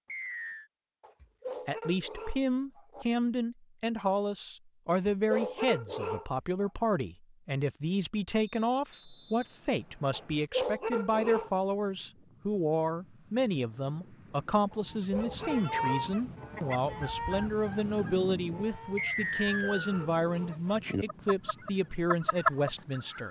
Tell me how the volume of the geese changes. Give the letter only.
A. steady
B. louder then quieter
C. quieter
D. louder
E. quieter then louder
E.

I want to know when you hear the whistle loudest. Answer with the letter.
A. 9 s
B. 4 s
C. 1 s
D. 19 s
D.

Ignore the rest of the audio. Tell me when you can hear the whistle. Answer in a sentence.
You can hear the whistle from 0.1 to 0.7 s, from 8.4 to 10.4 s and from 18.9 to 20.1 s.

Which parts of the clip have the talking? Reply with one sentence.
The talking can be heard from 1.6 to 23.2 s.